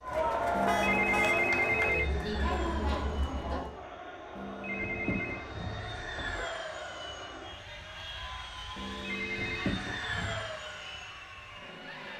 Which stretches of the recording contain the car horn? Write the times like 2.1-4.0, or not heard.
0.7-1.4, 4.8-6.5, 9.3-10.5.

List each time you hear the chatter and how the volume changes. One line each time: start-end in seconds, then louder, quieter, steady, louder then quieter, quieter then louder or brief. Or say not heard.
0.0-12.1 quieter.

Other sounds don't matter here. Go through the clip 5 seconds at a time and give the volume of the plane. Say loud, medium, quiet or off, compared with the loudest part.
medium, loud, loud.